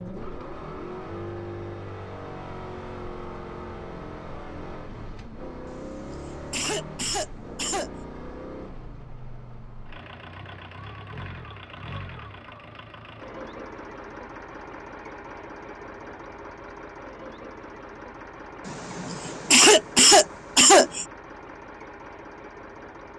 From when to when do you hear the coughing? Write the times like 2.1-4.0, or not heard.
5.7-7.9, 18.6-21.1.